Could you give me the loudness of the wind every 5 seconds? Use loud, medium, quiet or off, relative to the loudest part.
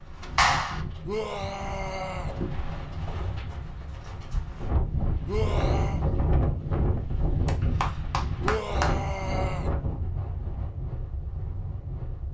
medium, loud, medium.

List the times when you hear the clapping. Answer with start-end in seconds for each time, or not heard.
0.3-0.8, 7.5-8.9.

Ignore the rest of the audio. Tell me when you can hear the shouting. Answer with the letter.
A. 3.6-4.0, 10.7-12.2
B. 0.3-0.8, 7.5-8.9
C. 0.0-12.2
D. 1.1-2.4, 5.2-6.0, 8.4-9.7
D.